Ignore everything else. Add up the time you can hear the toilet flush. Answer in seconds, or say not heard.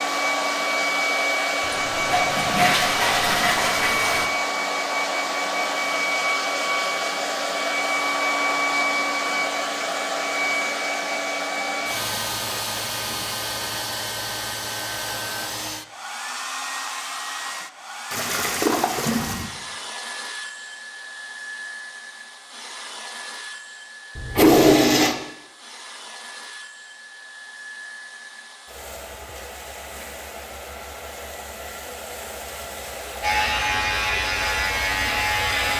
5 s.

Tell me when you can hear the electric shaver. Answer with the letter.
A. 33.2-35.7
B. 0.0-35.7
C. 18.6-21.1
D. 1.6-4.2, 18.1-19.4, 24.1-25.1
A.